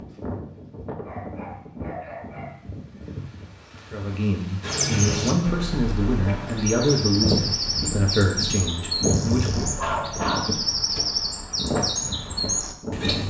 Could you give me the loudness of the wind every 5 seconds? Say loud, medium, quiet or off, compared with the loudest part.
medium, loud, loud.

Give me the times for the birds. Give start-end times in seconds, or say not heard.
4.6-13.2.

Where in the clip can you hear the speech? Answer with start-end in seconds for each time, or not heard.
3.9-9.7.